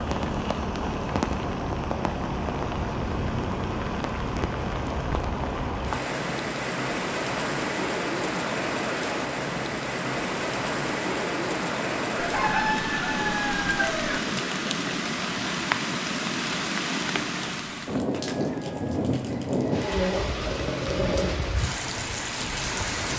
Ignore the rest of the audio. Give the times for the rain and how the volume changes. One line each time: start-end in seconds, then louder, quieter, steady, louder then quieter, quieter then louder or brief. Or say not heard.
0.0-23.1 steady.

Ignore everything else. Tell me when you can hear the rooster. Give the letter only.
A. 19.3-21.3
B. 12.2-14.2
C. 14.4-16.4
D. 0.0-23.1
B.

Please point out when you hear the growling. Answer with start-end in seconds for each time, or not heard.
19.3-21.3.